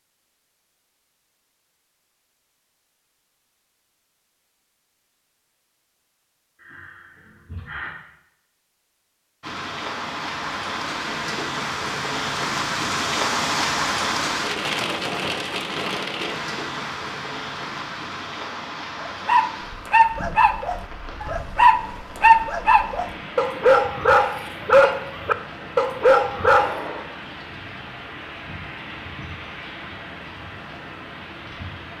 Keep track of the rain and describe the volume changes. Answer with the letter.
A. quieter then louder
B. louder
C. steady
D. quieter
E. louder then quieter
D.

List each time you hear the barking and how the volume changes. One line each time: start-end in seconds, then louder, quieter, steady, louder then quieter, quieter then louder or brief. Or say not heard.
19.0-26.8 steady.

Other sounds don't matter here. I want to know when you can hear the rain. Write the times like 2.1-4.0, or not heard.
9.4-31.9.